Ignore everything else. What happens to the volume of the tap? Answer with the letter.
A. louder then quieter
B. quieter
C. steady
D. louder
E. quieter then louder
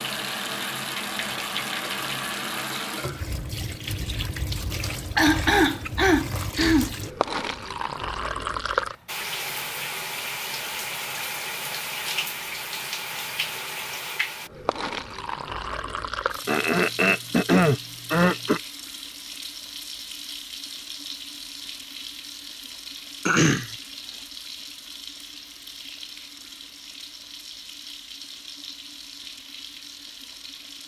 B.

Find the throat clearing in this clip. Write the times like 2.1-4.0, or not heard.
4.7-6.9, 16.4-18.6, 23.2-23.7.